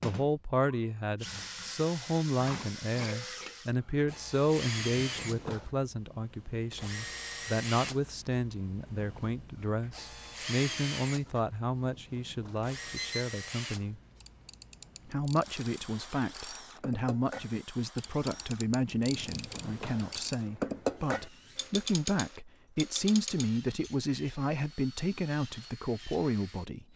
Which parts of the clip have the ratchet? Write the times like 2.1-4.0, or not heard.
14.2-23.9.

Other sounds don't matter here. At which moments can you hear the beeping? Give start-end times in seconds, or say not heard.
5.0-5.7, 11.8-13.2, 19.1-20.2.